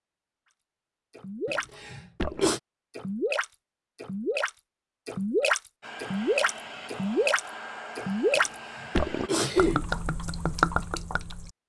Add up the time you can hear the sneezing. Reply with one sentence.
The sneezing can be heard for 3 seconds in total.